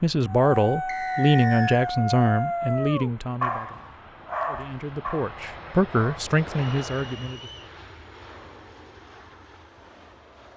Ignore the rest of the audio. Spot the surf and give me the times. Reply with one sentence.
The surf can't be heard in this clip.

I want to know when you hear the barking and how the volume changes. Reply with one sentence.
The barking can be heard from 0.2 to 6.2 s, getting quieter.